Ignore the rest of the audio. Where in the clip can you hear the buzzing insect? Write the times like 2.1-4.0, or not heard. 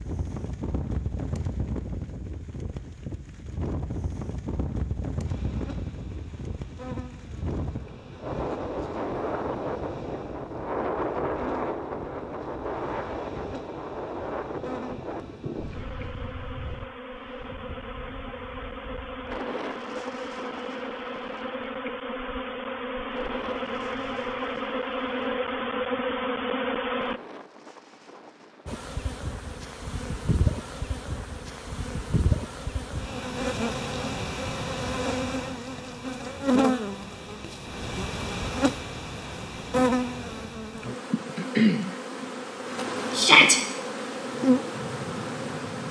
5.2-27.2, 28.6-45.8.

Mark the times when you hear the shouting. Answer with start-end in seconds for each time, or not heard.
43.1-43.6.